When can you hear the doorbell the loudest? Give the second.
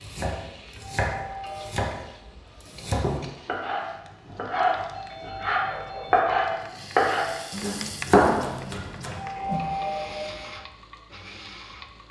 10 s.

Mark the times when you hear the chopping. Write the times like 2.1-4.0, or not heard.
0.0-9.7.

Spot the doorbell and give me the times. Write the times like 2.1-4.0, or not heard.
0.7-1.9, 4.9-6.3, 9.1-10.4.